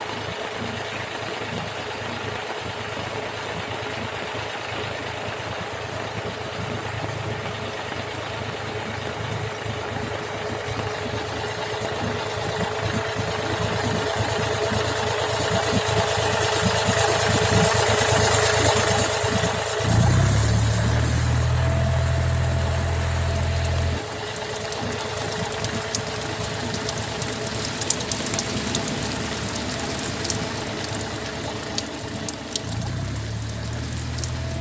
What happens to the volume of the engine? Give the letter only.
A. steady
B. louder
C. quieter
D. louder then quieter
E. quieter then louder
D.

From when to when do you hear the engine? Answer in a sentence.
The engine can be heard from 0.0 to 34.5 s.